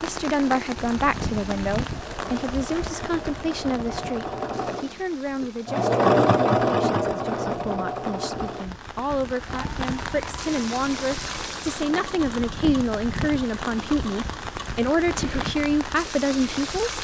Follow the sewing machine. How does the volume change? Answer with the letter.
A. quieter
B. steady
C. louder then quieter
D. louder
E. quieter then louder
C.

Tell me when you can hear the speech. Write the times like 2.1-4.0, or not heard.
0.0-16.9.